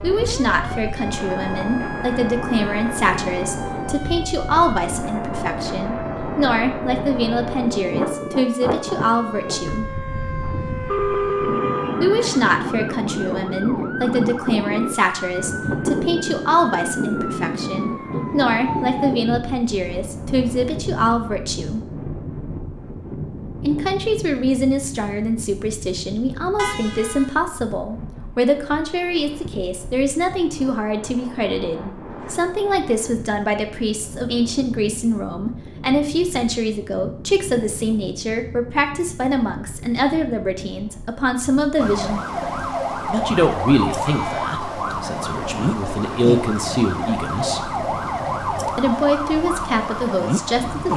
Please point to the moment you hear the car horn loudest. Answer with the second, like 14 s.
11 s.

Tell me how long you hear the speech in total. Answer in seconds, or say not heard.
45 s.